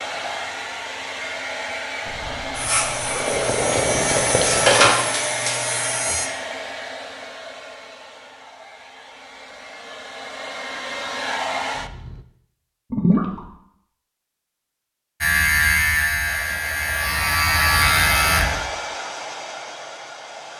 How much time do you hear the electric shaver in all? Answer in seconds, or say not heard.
7 s.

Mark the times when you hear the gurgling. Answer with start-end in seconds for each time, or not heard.
2.0-5.0, 12.9-13.5.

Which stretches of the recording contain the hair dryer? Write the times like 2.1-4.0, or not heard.
0.0-12.2, 16.2-20.5.